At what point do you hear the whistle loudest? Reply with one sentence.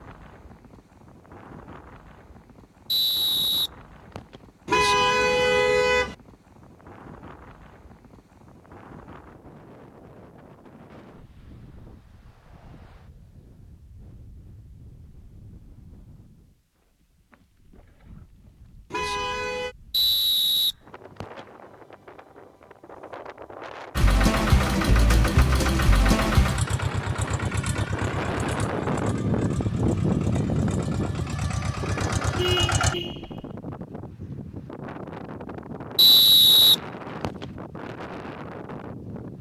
The loudest moment of the whistle is at 36 seconds.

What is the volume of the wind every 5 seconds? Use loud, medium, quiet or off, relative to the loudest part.
quiet, quiet, quiet, quiet, quiet, loud, loud, medium.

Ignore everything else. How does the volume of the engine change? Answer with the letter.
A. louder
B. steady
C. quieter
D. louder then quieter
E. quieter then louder
E.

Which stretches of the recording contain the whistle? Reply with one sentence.
You can hear the whistle from 2.9 to 4.4 s, from 19.9 to 21.4 s and from 36.0 to 37.5 s.